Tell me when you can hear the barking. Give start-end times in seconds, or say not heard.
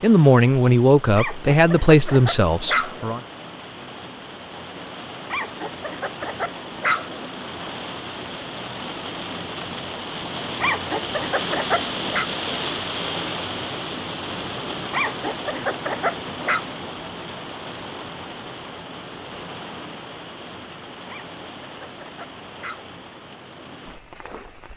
1.1-3.1, 5.3-7.3, 10.6-12.2, 14.9-16.6, 21.1-22.9.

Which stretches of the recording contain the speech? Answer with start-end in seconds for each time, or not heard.
0.0-3.2.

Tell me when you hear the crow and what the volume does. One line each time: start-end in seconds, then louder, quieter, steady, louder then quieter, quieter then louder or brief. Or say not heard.
not heard.